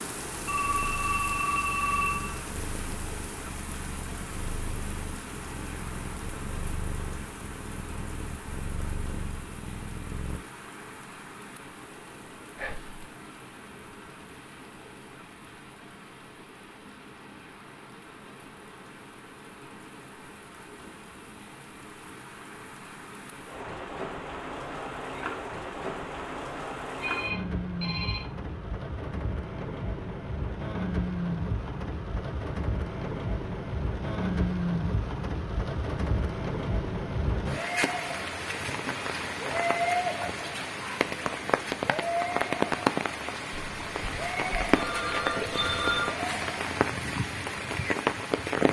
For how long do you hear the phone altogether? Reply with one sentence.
You can hear the phone for 6 seconds altogether.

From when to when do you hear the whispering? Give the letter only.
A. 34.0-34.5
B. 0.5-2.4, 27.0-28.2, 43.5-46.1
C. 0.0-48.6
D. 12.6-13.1
D.